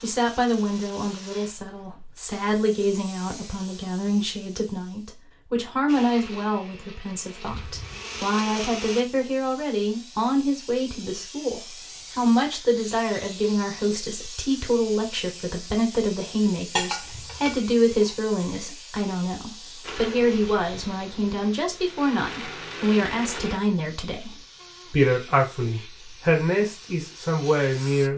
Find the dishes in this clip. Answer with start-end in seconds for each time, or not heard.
16.8-18.1.